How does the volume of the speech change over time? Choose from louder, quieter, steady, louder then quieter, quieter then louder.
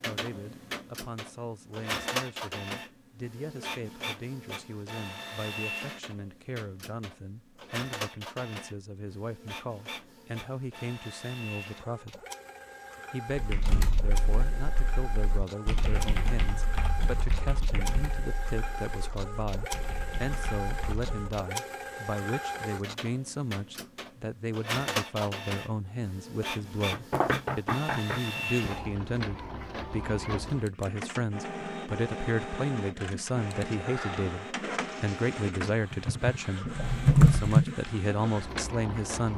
louder.